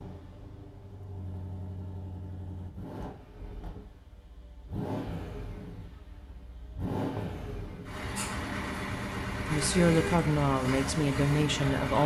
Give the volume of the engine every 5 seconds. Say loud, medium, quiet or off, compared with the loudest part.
medium, loud, loud.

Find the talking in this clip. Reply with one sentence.
You can hear the talking from 9.4 to 12.0 s.